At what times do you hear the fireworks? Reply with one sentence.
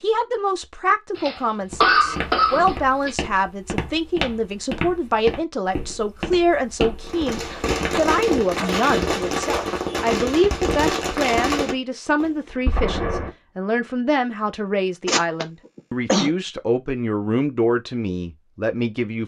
The fireworks can be heard from 7.0 to 13.3 s.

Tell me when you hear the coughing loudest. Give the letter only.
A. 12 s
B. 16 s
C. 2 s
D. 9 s
C.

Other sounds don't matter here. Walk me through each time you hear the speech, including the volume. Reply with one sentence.
You can hear the speech from 0.0 to 19.2 s, at a steady volume.